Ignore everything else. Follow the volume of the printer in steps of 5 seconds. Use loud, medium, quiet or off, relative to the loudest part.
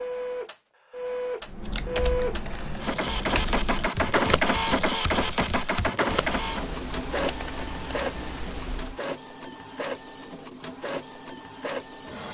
loud, loud, medium.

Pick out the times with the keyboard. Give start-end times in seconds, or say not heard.
1.4-9.0.